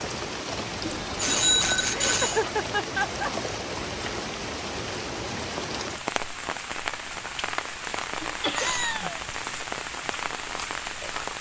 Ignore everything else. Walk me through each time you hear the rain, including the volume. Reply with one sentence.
You can hear the rain from 0.0 to 11.3 s, at a steady volume.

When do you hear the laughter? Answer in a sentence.
You can hear the laughter from 1.9 to 3.3 s and from 8.4 to 9.2 s.